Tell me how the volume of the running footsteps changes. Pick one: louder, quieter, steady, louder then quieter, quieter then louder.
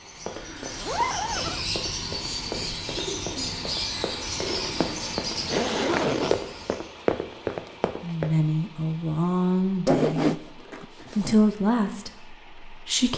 louder.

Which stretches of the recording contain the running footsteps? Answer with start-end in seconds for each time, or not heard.
0.0-8.3.